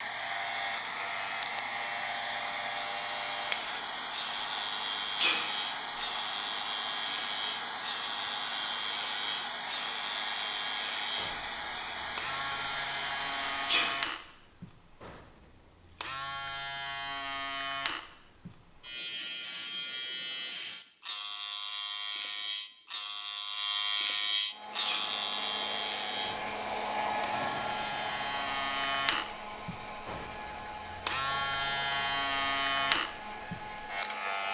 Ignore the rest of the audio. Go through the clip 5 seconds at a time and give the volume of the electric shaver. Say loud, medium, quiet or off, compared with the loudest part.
medium, medium, medium, medium, loud, loud, loud.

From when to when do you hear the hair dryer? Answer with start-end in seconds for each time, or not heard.
0.0-14.0, 24.4-34.4.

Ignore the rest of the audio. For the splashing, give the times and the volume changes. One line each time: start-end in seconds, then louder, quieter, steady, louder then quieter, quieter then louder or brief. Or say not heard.
not heard.